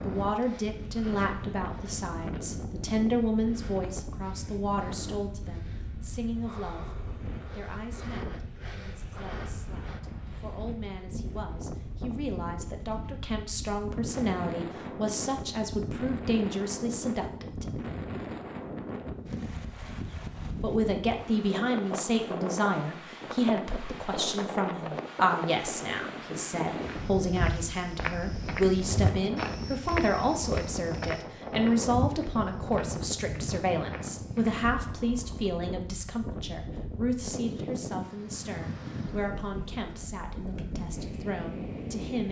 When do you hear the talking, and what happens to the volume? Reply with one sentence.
The talking can be heard from 0.1 to 17.6 s, getting quieter then louder; and from 20.6 to 42.2 s, getting quieter.